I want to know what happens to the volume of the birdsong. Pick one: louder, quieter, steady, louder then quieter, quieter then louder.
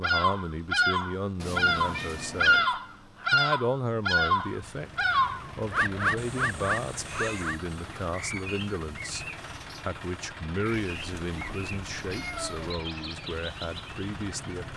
quieter.